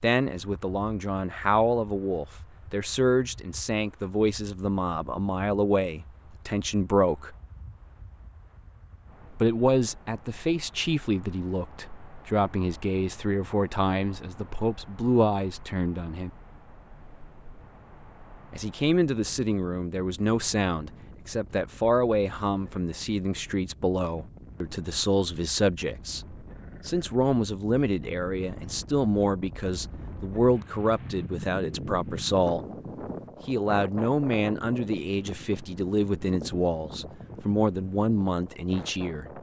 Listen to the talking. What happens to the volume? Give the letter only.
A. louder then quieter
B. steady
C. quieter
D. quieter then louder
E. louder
B.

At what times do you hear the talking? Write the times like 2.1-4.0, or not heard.
0.0-7.3, 9.4-16.3, 18.5-32.6, 33.5-39.3.